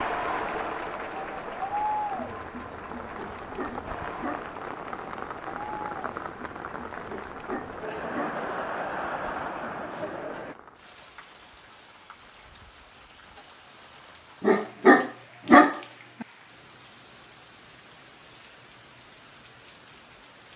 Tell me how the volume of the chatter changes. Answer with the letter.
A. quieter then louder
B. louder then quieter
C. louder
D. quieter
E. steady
A.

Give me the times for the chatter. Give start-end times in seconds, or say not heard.
0.0-10.6.